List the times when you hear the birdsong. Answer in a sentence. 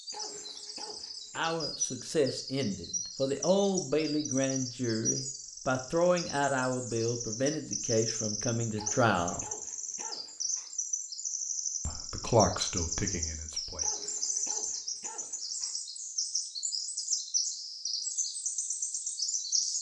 You can hear the birdsong from 0.0 to 19.7 s.